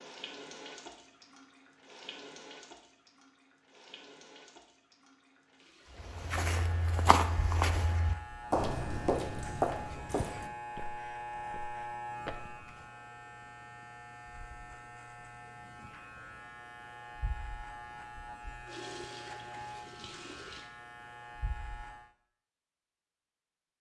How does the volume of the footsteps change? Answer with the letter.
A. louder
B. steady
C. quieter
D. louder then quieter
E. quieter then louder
C.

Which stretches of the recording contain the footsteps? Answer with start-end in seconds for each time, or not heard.
6.0-12.6.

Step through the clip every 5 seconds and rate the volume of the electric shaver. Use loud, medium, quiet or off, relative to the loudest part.
off, loud, loud, loud, medium.